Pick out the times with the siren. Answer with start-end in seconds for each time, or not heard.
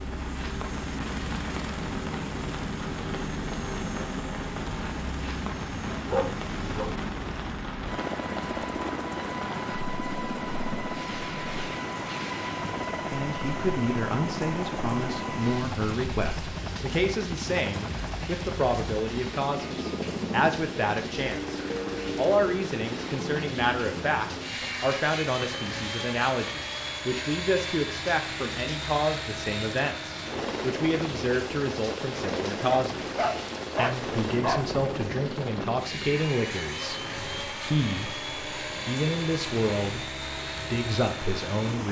not heard.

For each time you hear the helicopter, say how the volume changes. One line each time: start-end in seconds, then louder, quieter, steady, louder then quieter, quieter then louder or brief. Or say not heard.
0.0-41.8 steady.